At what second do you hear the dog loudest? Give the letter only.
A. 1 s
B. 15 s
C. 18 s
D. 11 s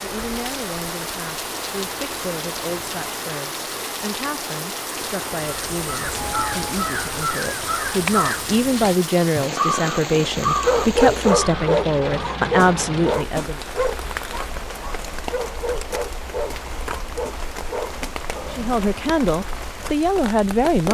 D.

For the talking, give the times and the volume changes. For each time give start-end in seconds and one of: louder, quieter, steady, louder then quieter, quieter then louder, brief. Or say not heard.
0.0-13.6 louder
18.5-20.8 brief.